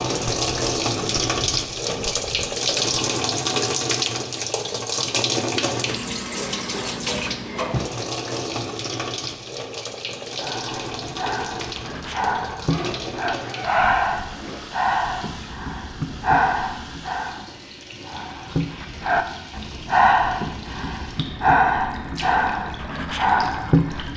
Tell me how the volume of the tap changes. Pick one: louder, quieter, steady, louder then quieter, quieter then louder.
quieter.